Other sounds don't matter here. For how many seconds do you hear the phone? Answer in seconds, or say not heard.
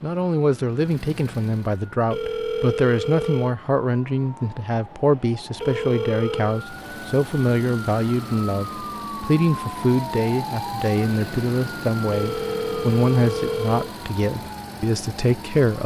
4 s.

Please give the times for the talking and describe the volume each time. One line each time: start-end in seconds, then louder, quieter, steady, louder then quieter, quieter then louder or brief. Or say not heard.
0.0-15.8 steady.